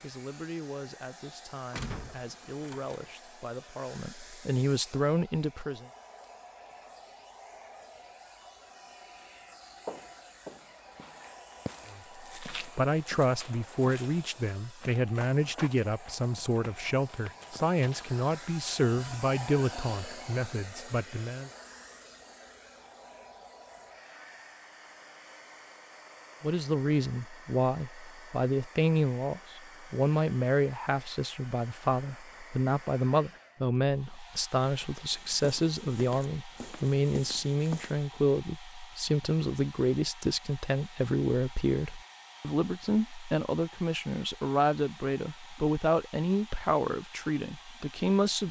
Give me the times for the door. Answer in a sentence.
You can hear the door from 1.7 to 3.0 s.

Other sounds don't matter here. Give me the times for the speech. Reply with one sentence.
You can hear the speech from 0.0 to 5.8 s, from 11.9 to 21.5 s and from 26.4 to 48.4 s.